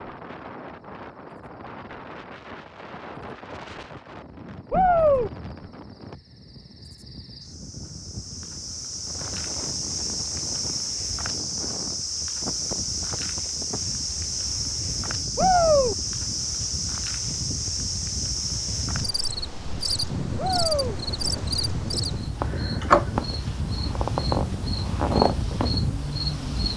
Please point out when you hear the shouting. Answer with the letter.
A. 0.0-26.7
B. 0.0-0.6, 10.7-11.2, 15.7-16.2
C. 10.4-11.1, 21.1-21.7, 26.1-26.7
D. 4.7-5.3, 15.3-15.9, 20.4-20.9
D.